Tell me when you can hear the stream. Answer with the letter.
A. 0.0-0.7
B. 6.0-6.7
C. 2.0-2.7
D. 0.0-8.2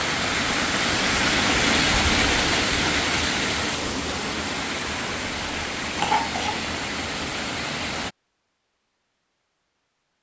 D.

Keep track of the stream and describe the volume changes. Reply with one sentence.
The loudness of the stream goes down.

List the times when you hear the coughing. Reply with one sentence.
You can hear the coughing from 6.0 to 6.7 s.